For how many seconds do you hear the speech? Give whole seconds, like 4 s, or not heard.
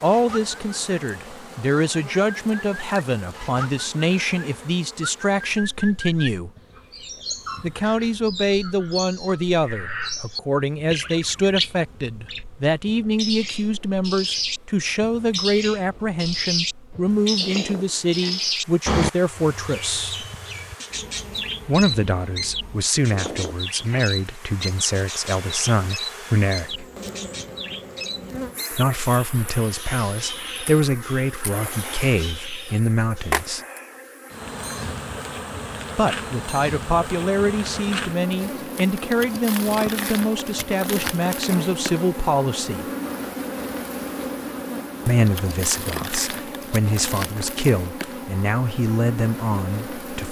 41 s.